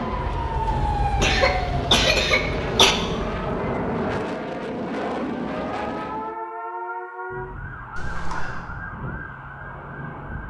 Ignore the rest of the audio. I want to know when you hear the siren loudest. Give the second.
1 s.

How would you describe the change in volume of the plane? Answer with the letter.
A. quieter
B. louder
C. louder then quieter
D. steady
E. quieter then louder
B.